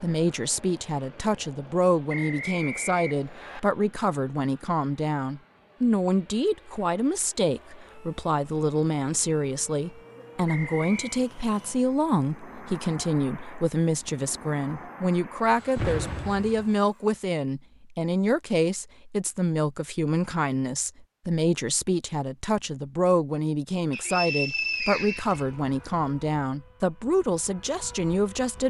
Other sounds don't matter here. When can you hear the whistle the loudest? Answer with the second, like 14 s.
25 s.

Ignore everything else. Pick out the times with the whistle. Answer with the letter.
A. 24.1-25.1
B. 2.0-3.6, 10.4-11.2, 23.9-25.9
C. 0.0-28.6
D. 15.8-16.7
B.